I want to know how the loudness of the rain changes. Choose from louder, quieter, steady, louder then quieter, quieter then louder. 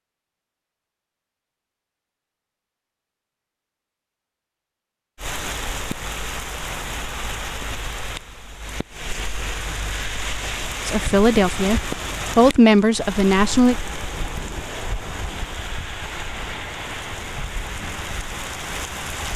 steady.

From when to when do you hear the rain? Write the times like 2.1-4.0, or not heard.
5.2-19.3.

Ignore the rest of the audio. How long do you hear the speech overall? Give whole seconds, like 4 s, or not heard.
3 s.